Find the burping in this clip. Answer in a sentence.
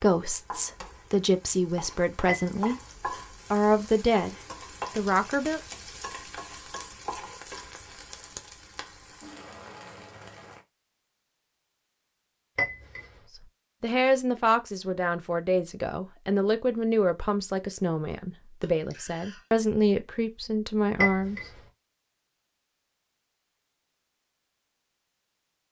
You can't hear the burping here.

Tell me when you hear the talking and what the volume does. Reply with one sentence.
You can hear the talking briefly from 0.0 to 2.8 s; briefly from 3.5 to 4.3 s; briefly from 5.0 to 5.6 s; and from 13.8 to 21.4 s, at a steady volume.